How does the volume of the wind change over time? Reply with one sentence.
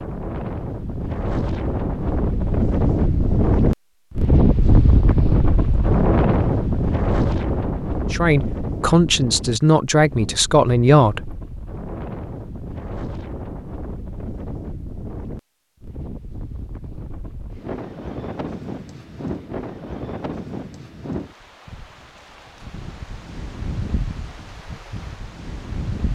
The volume of the wind goes down.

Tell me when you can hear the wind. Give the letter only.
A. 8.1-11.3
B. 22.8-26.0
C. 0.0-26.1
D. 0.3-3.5
C.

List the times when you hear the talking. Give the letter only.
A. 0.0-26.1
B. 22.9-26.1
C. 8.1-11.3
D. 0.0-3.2
C.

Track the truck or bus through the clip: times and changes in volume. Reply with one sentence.
You can't hear the truck or bus here.